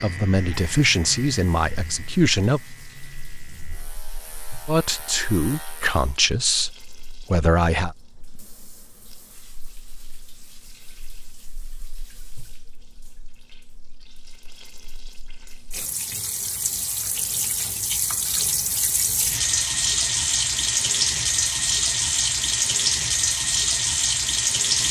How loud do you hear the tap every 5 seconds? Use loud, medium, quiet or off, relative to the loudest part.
quiet, quiet, quiet, medium, loud.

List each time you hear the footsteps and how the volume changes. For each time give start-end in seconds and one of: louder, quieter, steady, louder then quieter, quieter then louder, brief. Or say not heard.
not heard.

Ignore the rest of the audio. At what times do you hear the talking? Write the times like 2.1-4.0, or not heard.
0.0-2.6, 4.7-8.0.